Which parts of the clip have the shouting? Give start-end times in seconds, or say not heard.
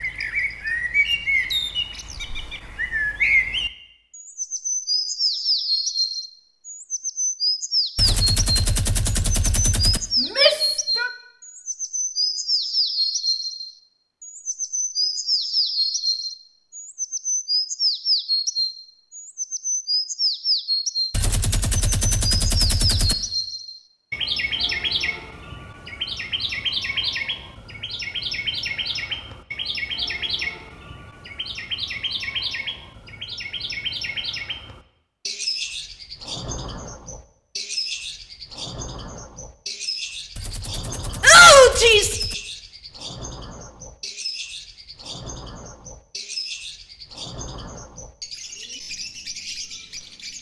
10.2-11.1, 41.2-42.1.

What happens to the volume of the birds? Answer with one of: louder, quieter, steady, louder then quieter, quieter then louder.
quieter.